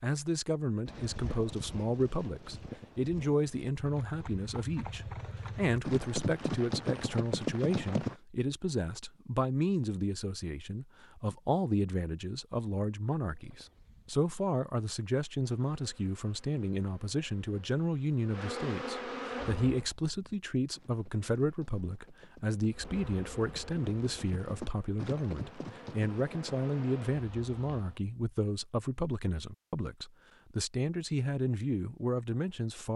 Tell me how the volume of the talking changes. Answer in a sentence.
The volume of the talking stays about the same.